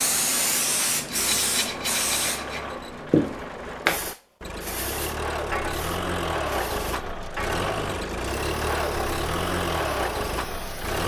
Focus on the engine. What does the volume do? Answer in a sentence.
The volume of the engine goes up.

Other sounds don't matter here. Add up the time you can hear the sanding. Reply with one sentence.
The sanding can be heard for 2 seconds in total.